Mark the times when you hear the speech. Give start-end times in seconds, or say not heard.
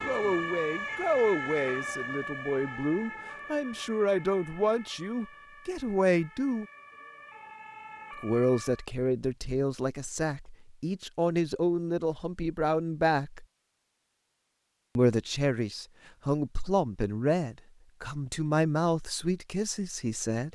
0.1-6.7, 8.2-13.4, 14.9-20.5.